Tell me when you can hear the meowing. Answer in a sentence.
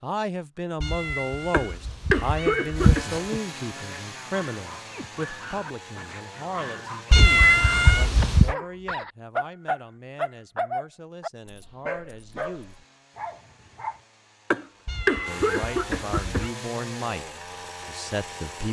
The meowing can be heard from 0.8 to 3.4 s, from 7.1 to 8.6 s and from 14.8 to 16.6 s.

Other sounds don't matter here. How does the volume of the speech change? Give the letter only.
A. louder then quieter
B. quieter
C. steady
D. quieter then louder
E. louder
D.